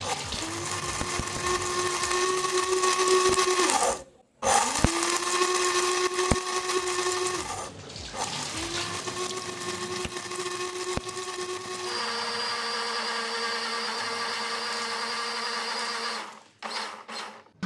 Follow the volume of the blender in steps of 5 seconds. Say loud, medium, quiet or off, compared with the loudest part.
loud, loud, medium, medium.